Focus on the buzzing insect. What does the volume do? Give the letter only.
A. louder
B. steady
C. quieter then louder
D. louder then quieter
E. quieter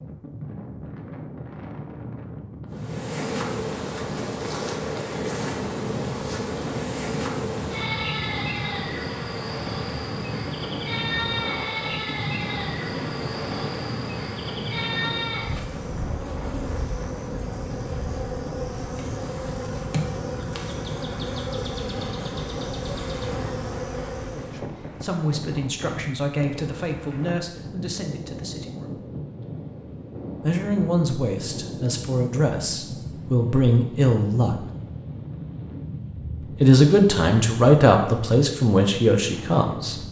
B.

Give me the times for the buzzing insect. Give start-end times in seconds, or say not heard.
2.7-24.6.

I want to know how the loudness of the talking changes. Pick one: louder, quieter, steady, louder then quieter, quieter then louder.
louder.